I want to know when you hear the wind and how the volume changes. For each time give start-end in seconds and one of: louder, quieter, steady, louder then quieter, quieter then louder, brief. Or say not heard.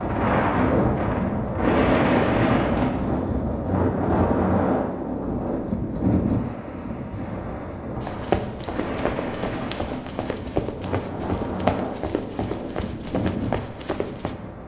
0.0-14.6 quieter.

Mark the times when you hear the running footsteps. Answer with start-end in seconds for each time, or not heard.
8.0-14.3.